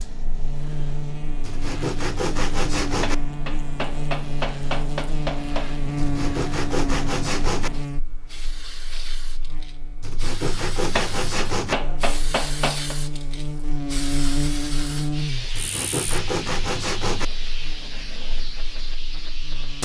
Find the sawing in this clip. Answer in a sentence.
The sawing can be heard from 1.4 to 3.1 s, from 6.0 to 7.7 s, from 10.0 to 11.8 s and from 15.5 to 17.2 s.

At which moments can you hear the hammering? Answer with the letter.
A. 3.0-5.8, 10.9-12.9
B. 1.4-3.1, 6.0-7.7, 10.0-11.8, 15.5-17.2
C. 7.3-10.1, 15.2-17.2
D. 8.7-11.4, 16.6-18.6
A.